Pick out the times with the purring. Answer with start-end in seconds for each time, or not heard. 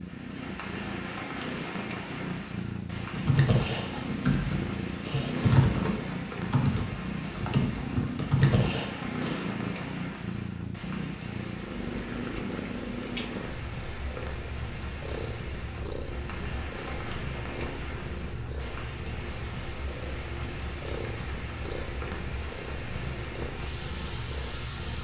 0.0-25.0.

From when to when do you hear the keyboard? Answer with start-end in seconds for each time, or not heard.
3.1-8.9.